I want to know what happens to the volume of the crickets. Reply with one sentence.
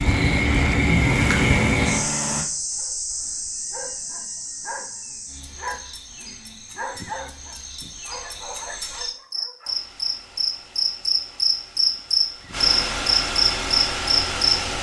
The loudness of the crickets goes down, then up.